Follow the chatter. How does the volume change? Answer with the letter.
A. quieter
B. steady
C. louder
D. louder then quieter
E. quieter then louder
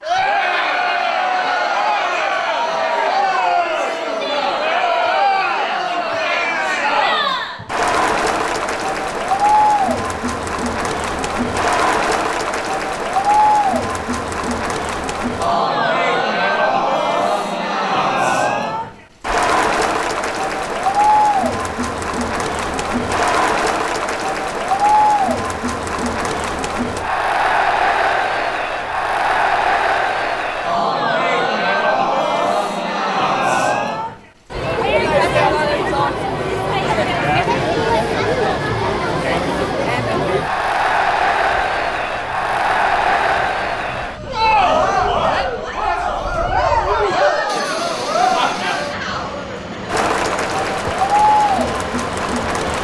B.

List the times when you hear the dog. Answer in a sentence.
The dog can't be heard in this clip.